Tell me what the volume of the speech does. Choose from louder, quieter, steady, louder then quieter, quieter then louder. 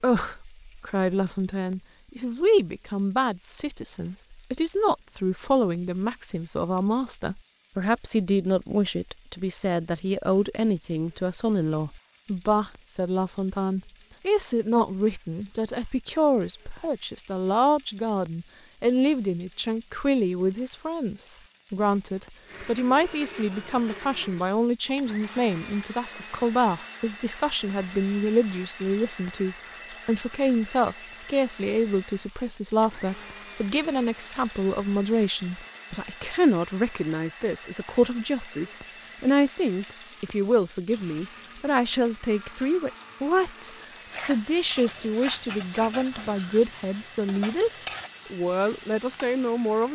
steady.